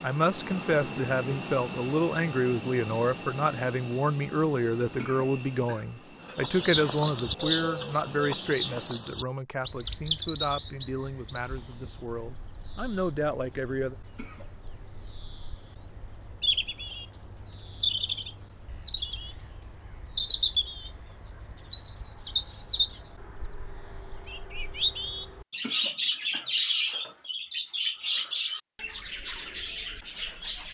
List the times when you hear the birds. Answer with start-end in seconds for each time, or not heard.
6.3-30.6.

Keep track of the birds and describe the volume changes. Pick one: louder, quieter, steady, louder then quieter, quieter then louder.
quieter then louder.